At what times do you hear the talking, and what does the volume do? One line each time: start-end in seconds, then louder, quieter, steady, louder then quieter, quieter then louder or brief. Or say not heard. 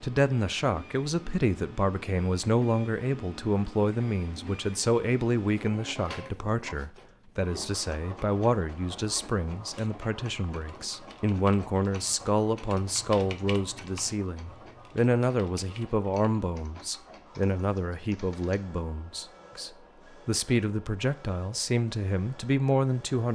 0.0-23.3 steady.